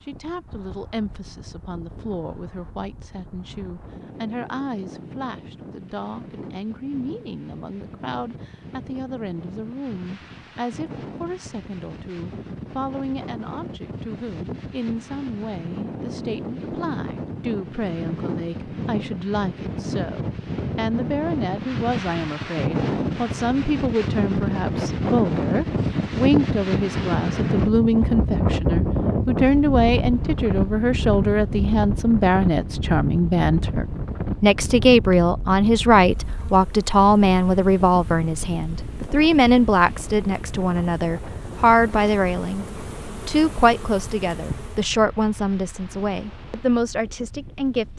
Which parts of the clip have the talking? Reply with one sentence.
You can hear the talking from 0.1 to 42.6 s and from 43.2 to 47.9 s.